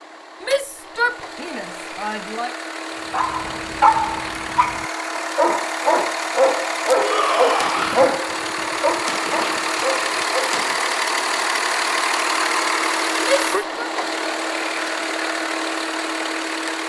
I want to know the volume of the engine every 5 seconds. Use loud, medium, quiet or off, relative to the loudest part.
medium, loud, loud, loud.